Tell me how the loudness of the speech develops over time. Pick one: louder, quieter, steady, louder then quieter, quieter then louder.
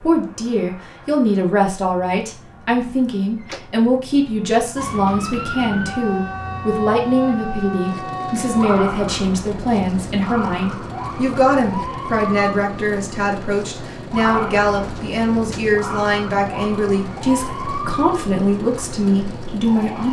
steady.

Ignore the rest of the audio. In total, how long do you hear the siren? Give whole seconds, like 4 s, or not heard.
15 s.